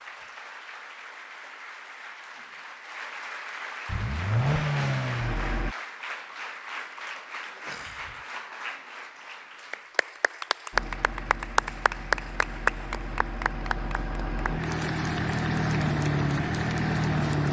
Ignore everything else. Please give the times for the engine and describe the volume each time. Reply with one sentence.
The engine can be heard briefly from 3.9 to 5.8 s; and from 10.7 to 17.4 s, getting louder.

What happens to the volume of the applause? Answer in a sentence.
The volume of the applause goes up, then down.